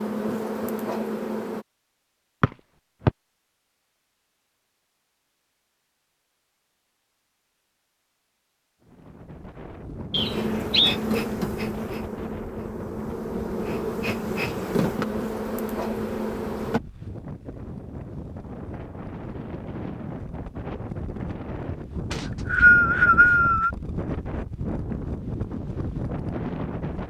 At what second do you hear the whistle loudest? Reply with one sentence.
The volume of the whistle peaks at 23 seconds.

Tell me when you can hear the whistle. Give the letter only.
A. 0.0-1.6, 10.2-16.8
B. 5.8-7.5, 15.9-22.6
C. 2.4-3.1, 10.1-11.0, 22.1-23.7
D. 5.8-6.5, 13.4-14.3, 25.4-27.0
C.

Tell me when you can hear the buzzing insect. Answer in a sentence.
The buzzing insect can be heard from 0.0 to 1.6 s and from 10.2 to 16.8 s.